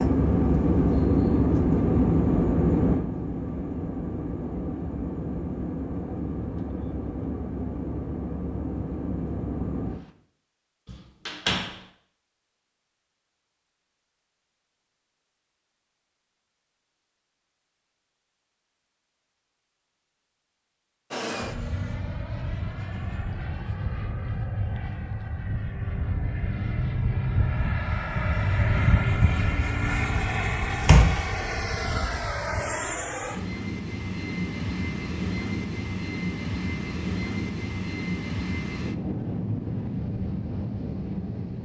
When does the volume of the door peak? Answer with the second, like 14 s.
31 s.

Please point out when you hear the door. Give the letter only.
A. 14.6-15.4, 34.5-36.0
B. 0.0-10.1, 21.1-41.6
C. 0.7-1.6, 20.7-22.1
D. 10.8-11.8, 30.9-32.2
D.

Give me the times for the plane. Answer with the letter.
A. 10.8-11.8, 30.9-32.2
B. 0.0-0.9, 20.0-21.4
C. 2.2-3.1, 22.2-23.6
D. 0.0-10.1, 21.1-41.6
D.